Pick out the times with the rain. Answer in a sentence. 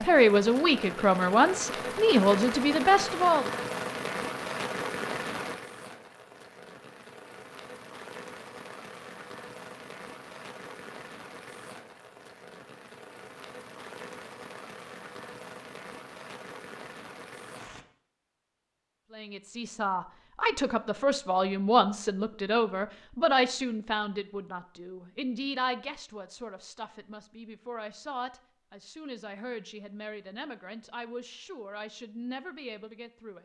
The rain can be heard from 0.0 to 17.9 s.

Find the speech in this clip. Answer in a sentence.
The speech can be heard from 0.0 to 3.5 s and from 19.1 to 33.3 s.